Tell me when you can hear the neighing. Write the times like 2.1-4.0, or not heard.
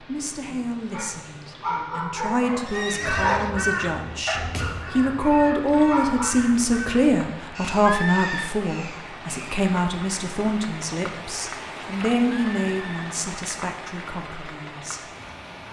2.6-3.5, 7.8-8.5, 12.5-13.2.